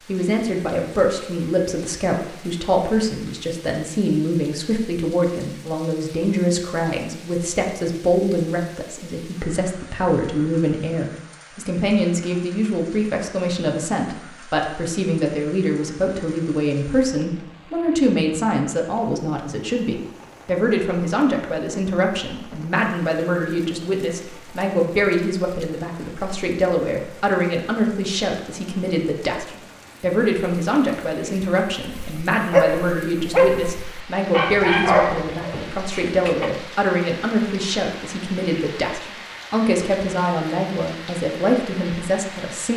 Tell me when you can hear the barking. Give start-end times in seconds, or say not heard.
31.9-36.5.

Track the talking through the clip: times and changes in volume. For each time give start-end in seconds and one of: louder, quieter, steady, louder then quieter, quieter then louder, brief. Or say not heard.
0.1-42.7 steady.